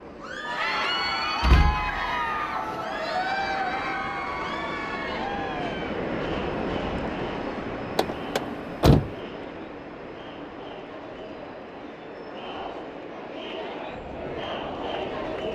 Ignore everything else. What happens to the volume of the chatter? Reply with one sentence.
The loudness of the chatter goes down, then up.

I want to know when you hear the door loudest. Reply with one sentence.
The volume of the door peaks at 9 seconds.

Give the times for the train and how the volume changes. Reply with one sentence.
You can hear the train from 0.0 to 15.5 s, getting louder then quieter.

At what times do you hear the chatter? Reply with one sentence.
You can hear the chatter from 0.1 to 15.5 s.